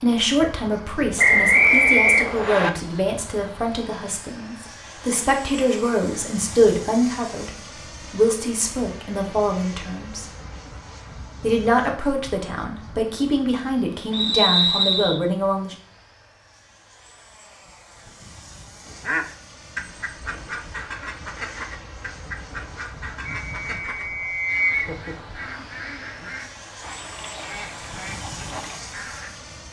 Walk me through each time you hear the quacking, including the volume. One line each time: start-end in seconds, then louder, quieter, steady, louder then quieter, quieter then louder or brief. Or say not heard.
18.9-29.4 steady.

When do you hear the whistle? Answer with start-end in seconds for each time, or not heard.
1.1-2.7, 14.1-15.2, 23.2-24.9.